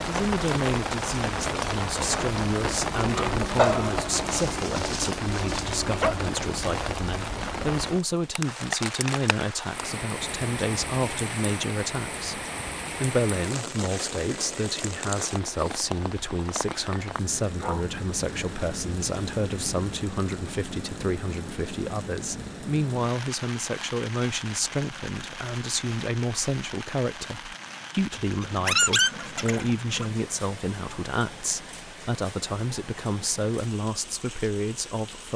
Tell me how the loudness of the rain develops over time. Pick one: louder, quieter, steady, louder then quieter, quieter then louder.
quieter.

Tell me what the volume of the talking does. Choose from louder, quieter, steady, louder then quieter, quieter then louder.
steady.